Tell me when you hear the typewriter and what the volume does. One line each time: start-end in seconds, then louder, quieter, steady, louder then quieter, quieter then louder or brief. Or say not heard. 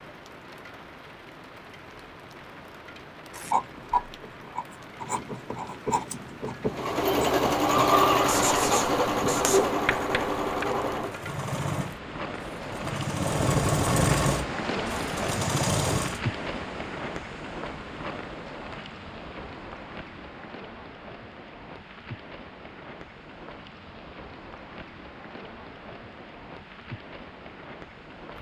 not heard.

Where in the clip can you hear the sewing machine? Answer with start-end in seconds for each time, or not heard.
6.7-16.2.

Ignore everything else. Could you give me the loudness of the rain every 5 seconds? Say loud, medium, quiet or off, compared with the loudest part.
medium, medium, loud, loud, medium, medium.